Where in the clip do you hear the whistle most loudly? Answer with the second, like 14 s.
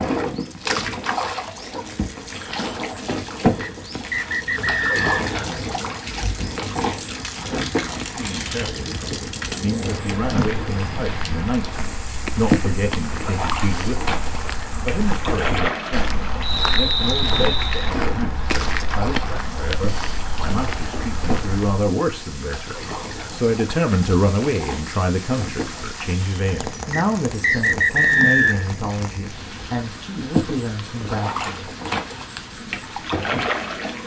28 s.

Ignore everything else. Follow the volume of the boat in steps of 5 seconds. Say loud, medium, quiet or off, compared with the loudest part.
loud, loud, loud, loud, medium, medium, loud.